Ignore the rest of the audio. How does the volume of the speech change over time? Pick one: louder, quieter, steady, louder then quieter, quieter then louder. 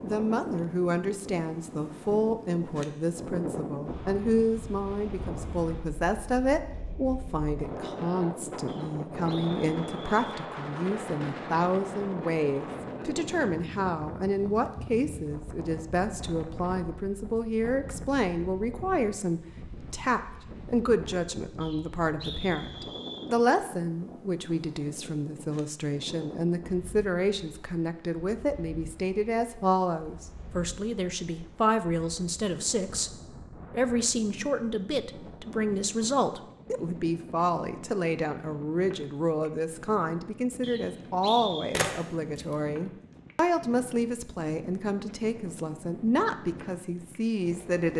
steady.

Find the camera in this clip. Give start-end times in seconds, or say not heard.
41.7-42.5.